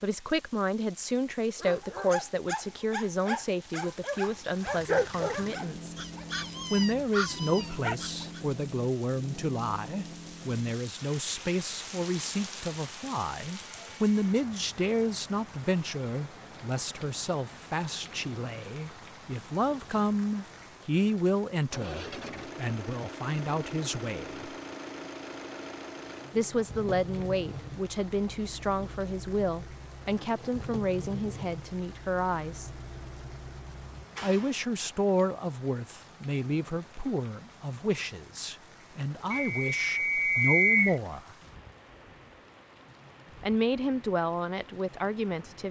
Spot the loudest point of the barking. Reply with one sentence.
The volume of the barking peaks at 5 seconds.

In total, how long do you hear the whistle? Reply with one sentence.
The whistle can be heard for 2 seconds in total.